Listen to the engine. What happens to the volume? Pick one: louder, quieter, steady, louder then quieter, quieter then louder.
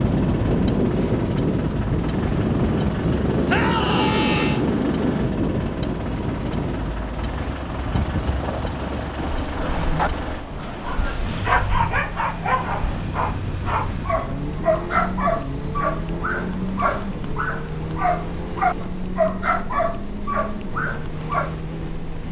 steady.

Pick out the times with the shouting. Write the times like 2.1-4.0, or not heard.
3.5-4.6.